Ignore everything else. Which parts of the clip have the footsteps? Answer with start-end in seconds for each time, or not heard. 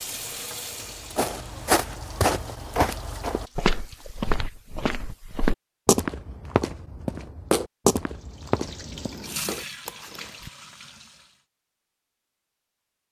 0.8-10.5.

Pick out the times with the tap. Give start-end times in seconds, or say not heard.
0.0-4.3, 8.1-11.4.